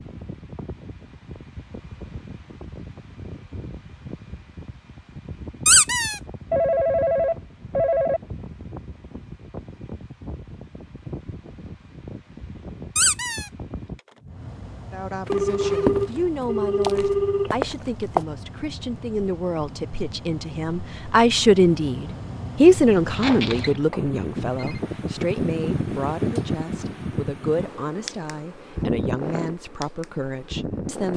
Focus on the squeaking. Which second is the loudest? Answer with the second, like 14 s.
6 s.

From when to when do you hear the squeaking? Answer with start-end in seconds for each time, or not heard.
5.7-6.2, 12.9-13.5, 23.1-23.8.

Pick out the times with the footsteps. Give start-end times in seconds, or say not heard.
15.2-18.2.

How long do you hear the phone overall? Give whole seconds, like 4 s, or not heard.
6 s.